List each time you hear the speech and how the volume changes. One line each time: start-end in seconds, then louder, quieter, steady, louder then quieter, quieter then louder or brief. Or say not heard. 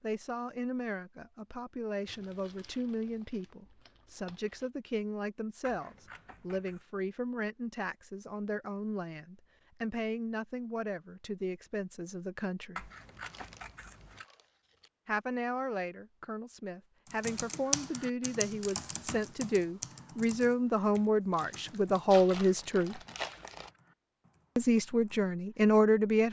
0.0-12.9 steady
15.1-23.0 louder
24.6-26.2 brief.